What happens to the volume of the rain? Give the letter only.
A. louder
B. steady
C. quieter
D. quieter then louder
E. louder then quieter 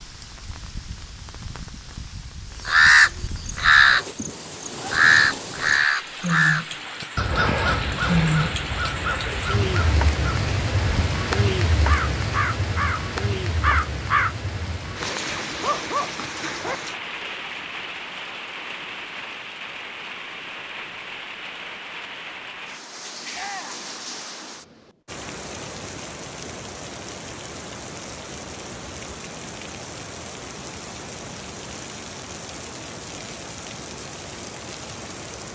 E.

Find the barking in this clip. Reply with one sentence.
The barking can be heard from 15.5 to 16.8 s.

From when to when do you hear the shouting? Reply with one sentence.
The shouting can be heard from 23.3 to 23.9 s.